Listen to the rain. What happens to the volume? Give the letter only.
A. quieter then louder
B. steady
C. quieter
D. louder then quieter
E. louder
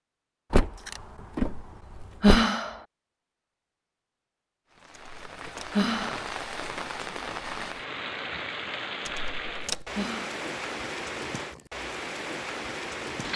B.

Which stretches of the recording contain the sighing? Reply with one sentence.
You can hear the sighing from 2.2 to 2.8 s, from 5.7 to 6.2 s and from 9.9 to 10.3 s.